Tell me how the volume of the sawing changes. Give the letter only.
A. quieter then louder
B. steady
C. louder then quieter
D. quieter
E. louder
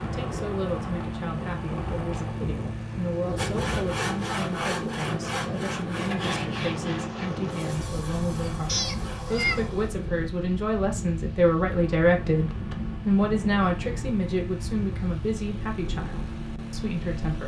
D.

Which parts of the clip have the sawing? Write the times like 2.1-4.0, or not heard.
3.4-9.4.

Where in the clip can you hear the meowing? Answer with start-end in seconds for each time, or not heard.
8.7-9.8.